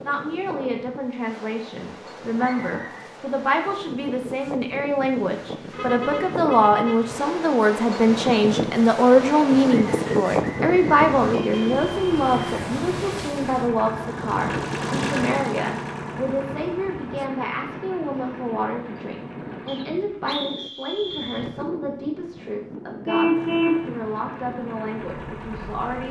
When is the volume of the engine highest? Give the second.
15 s.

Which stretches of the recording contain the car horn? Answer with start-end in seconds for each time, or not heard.
5.7-7.2, 10.6-12.6, 23.1-23.9.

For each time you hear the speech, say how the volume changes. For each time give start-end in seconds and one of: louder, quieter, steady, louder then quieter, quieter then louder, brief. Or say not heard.
0.0-26.0 louder then quieter.